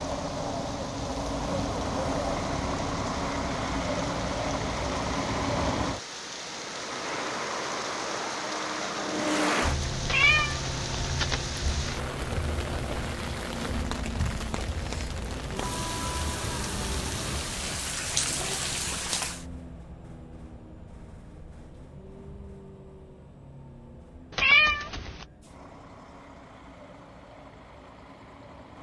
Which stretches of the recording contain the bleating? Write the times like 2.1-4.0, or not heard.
not heard.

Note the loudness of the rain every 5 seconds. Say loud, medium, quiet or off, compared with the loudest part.
medium, medium, loud, loud, off, off.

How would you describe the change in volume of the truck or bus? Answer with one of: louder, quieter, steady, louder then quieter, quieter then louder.
quieter.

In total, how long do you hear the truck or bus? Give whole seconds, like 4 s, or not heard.
29 s.